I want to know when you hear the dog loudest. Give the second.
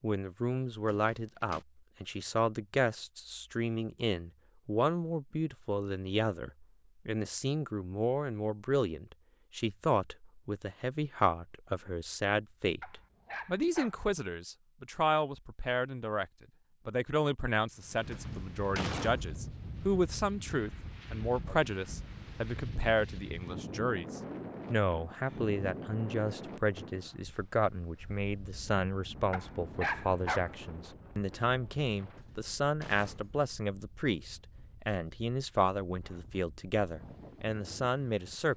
30 s.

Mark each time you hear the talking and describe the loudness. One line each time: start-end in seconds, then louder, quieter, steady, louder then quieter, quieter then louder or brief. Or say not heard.
0.0-16.2 steady
16.9-38.5 steady.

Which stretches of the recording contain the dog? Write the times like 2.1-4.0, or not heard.
12.8-14.1, 29.3-30.7.